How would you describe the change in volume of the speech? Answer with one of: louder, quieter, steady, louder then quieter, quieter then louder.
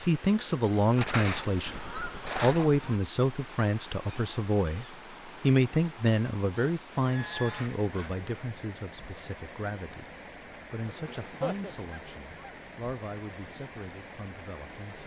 quieter.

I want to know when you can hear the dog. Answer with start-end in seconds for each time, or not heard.
not heard.